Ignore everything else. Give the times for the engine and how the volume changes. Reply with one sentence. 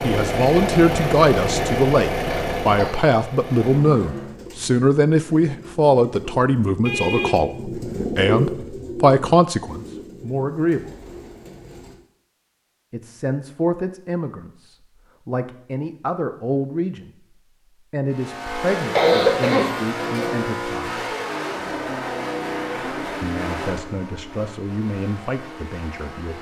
You can hear the engine from 0.0 to 4.3 s, getting quieter; and from 18.1 to 26.3 s, getting quieter.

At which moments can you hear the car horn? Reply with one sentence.
The car horn can be heard from 6.8 to 7.5 s.